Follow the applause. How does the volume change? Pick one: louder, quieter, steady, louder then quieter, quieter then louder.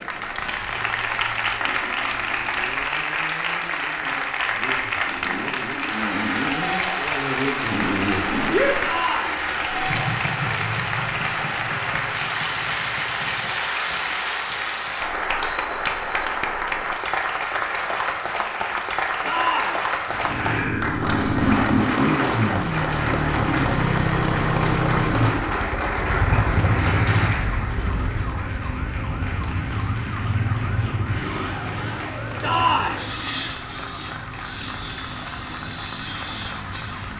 quieter.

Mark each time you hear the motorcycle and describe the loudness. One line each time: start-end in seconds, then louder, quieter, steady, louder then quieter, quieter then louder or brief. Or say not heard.
0.0-13.7 louder then quieter
20.1-37.1 quieter.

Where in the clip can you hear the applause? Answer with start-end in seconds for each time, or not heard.
0.0-37.1.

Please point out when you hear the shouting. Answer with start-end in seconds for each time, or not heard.
8.8-9.4, 19.2-19.9, 32.4-33.0.